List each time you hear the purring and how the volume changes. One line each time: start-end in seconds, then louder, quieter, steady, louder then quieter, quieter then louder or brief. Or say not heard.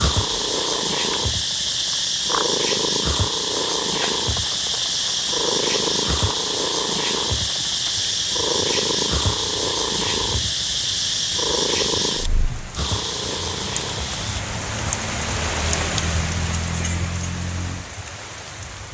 0.0-14.4 steady.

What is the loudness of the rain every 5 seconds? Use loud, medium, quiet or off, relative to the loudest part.
medium, medium, medium, loud.